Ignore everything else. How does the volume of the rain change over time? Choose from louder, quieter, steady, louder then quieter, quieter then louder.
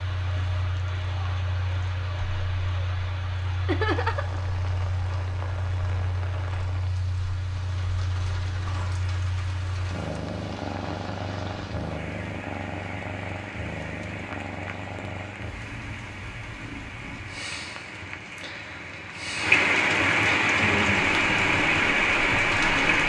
louder.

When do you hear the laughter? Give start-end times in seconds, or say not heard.
3.6-4.4.